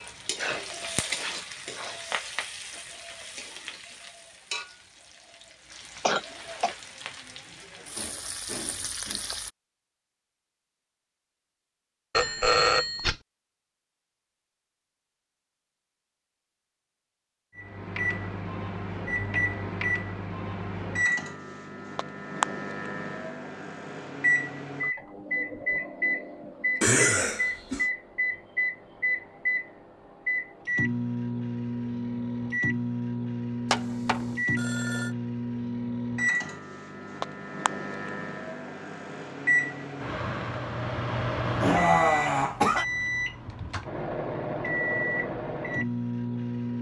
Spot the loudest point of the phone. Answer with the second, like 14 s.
13 s.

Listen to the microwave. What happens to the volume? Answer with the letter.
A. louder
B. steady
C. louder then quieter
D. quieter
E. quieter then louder
B.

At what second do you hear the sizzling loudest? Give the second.
1 s.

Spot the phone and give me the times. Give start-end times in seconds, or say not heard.
12.1-13.2, 33.7-35.1.